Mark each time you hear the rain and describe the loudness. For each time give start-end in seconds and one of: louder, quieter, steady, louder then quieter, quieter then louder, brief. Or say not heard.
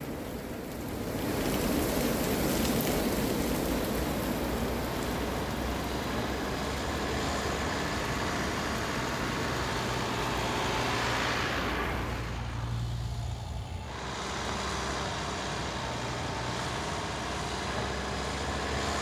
0.0-12.5 quieter.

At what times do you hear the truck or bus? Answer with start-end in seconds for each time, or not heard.
3.7-18.9.